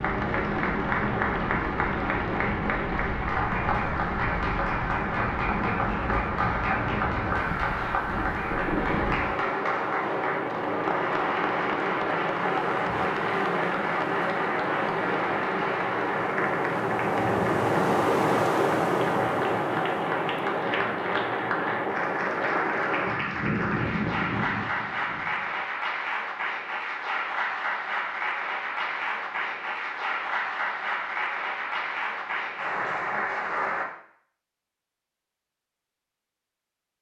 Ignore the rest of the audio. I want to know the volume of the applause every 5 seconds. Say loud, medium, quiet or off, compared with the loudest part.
loud, loud, loud, loud, loud, loud, loud, off.